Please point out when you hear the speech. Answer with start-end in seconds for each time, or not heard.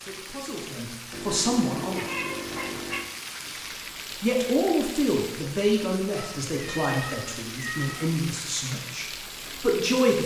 0.0-2.0, 4.1-10.2.